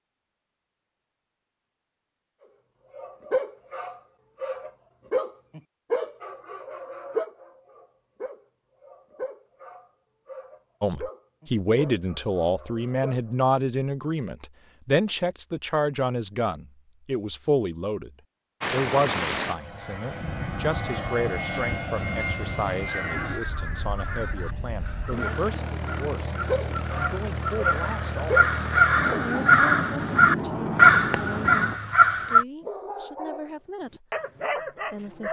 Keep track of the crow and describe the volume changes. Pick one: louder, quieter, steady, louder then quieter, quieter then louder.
louder.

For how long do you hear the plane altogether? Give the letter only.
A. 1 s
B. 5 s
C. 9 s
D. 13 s
D.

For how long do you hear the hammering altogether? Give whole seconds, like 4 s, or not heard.
not heard.